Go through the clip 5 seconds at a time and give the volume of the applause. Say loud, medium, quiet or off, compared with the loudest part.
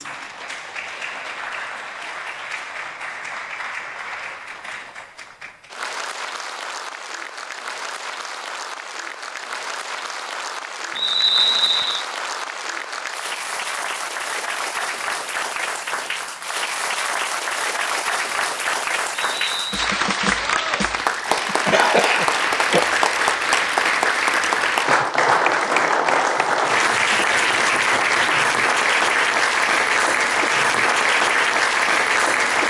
quiet, quiet, medium, medium, loud, loud, loud.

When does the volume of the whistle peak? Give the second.
11 s.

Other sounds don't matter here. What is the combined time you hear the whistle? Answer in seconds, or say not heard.
2 s.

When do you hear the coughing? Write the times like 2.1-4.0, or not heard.
21.4-22.9.